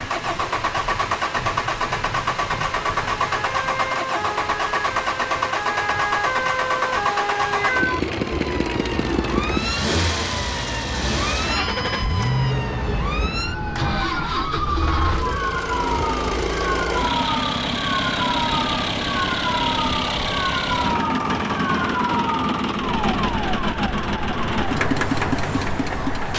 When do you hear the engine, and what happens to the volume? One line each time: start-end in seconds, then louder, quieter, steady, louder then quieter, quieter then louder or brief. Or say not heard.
0.0-26.3 steady.